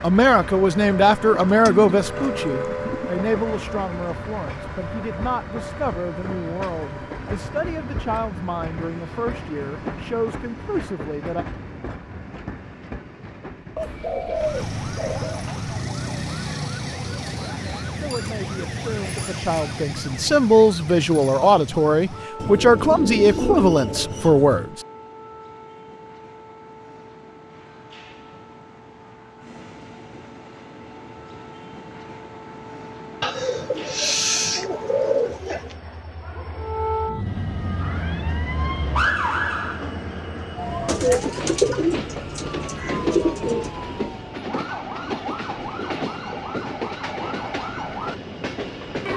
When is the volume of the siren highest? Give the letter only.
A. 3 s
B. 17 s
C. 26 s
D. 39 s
D.